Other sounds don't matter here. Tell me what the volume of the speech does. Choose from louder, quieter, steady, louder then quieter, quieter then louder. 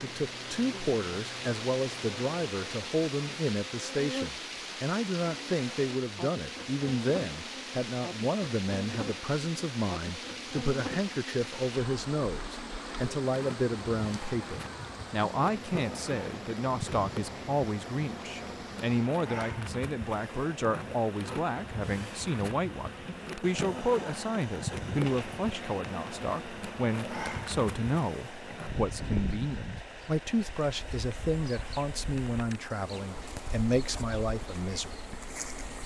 steady.